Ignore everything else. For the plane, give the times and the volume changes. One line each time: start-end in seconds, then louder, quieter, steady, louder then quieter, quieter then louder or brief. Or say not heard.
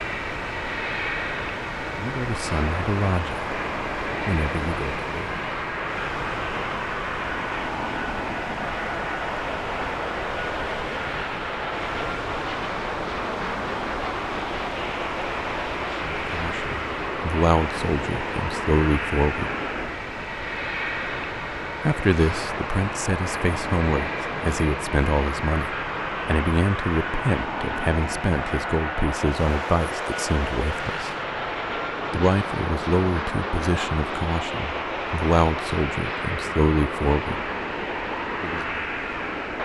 0.0-39.6 steady.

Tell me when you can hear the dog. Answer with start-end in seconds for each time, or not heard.
not heard.